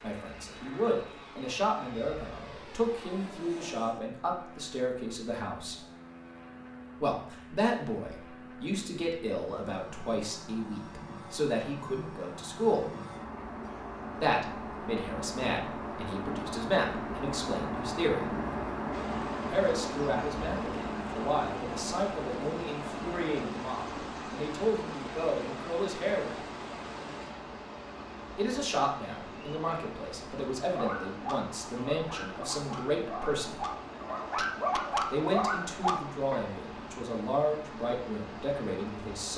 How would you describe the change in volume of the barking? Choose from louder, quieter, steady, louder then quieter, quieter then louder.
louder.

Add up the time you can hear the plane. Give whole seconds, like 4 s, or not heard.
39 s.